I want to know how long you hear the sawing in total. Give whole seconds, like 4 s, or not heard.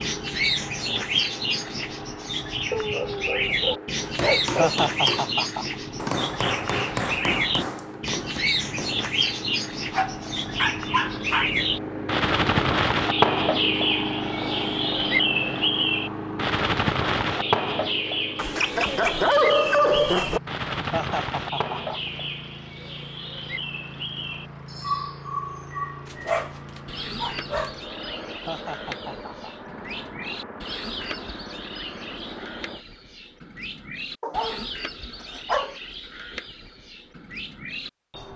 not heard.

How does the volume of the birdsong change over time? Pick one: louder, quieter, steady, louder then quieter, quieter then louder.
quieter.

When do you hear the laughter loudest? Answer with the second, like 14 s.
5 s.